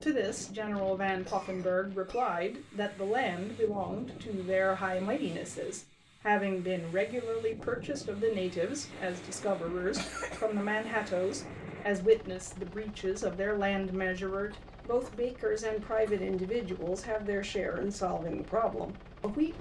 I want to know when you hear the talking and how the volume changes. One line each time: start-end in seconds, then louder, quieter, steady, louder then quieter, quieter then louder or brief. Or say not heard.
0.0-19.5 steady.